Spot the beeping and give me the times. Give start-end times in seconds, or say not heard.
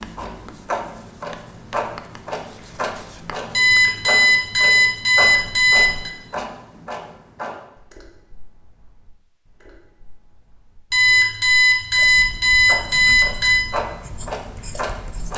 3.5-6.1, 10.9-13.7.